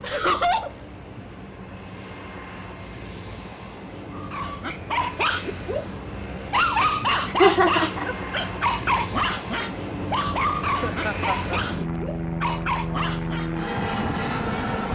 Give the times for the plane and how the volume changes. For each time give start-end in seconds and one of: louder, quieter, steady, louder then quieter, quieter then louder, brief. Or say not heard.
0.0-14.9 louder.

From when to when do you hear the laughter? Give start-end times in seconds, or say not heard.
0.0-0.7, 7.3-8.1, 10.8-11.6.